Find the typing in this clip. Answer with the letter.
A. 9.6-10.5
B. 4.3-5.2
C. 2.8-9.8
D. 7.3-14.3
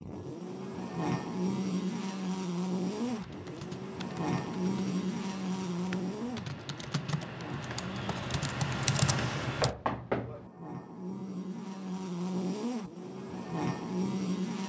C.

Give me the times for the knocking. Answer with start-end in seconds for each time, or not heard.
9.6-10.5.